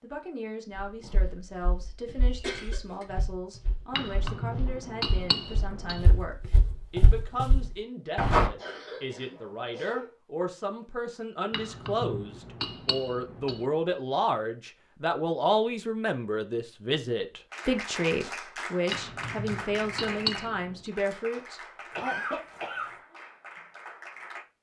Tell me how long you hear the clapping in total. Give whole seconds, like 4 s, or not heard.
7 s.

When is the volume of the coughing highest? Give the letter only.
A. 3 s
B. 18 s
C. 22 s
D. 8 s
C.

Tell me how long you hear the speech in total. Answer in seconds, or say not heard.
22 s.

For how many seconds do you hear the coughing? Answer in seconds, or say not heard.
3 s.